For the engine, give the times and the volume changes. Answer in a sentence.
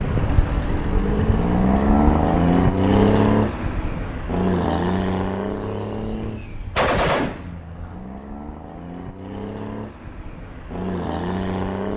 The engine can be heard from 0.0 to 11.9 s, getting quieter then louder.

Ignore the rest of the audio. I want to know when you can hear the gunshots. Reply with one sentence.
You can hear the gunshots from 6.2 to 7.5 s.